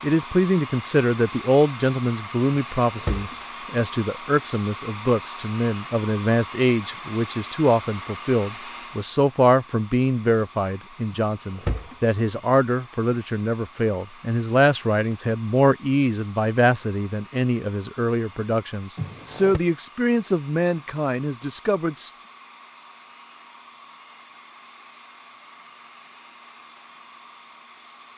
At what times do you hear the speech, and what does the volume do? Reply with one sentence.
You can hear the speech from 0.0 to 22.1 s, at a steady volume.